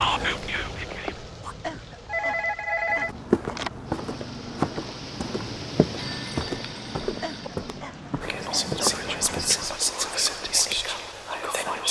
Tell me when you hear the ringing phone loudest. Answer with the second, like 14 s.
3 s.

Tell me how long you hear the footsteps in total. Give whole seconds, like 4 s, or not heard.
7 s.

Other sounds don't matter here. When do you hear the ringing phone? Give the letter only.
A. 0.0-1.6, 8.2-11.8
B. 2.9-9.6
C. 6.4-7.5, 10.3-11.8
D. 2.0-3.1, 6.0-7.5
D.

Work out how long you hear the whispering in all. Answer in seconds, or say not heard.
5 s.